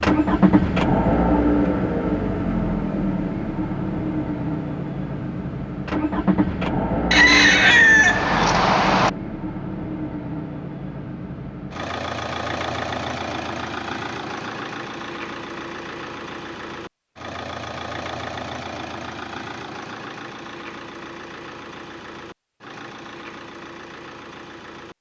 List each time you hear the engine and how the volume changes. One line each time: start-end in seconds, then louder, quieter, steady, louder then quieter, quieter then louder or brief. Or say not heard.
0.0-24.9 quieter.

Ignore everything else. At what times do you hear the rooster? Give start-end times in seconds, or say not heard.
7.1-9.1.